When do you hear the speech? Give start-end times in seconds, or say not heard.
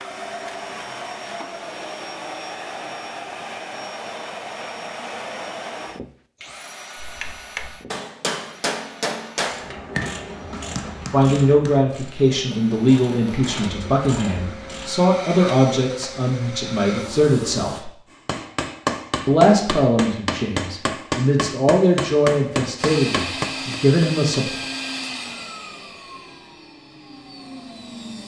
11.1-17.9, 19.2-24.6.